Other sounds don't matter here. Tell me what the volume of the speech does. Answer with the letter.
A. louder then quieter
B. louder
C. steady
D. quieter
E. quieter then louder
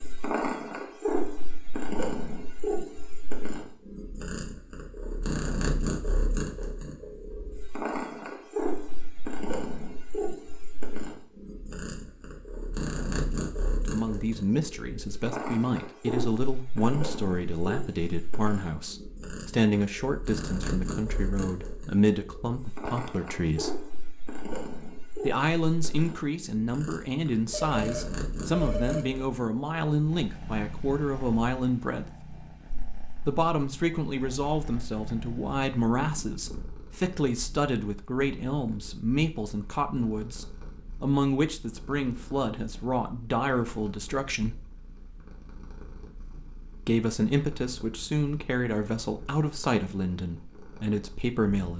C.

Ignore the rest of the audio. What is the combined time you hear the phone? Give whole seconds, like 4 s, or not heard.
2 s.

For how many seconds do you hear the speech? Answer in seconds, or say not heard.
33 s.